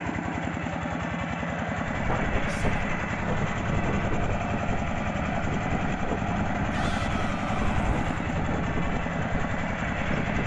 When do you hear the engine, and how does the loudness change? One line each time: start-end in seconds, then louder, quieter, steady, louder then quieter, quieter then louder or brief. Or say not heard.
0.0-10.4 steady.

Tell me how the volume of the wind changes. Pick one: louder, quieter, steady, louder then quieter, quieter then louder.
steady.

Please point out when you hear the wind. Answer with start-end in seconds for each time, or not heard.
1.8-10.4.